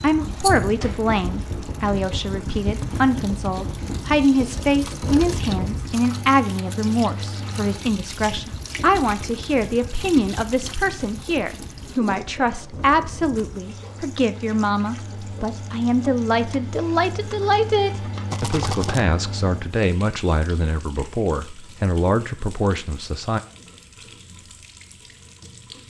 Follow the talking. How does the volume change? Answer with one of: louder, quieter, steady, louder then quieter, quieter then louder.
steady.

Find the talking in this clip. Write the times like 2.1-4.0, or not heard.
0.0-23.4.